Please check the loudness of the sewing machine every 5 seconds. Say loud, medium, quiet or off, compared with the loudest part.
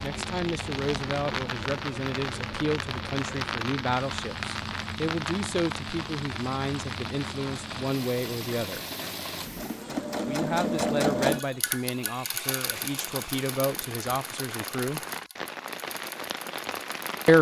quiet, medium, loud, quiet.